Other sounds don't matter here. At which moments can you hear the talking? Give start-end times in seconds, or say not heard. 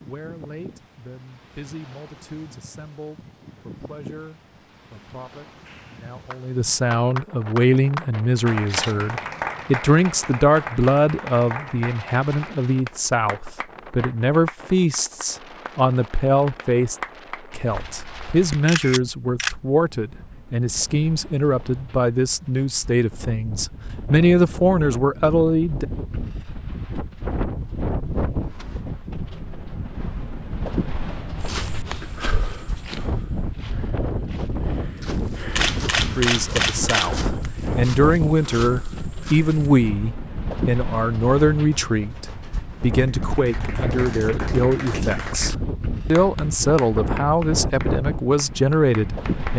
0.0-25.9, 36.1-49.5.